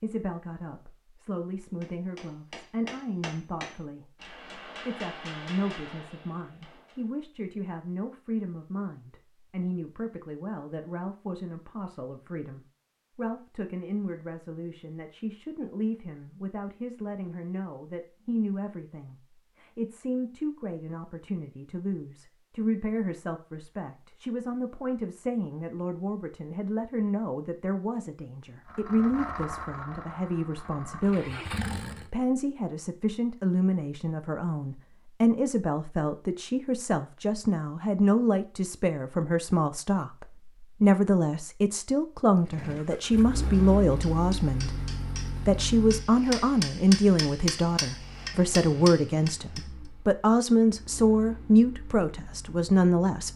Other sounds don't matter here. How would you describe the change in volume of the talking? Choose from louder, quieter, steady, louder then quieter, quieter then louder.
louder.